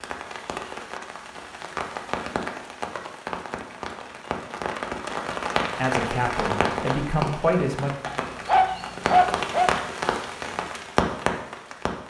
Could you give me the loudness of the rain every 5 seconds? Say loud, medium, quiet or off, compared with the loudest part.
medium, loud, loud.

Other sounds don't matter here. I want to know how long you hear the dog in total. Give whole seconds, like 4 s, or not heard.
2 s.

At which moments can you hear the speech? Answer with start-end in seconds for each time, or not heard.
5.8-7.9.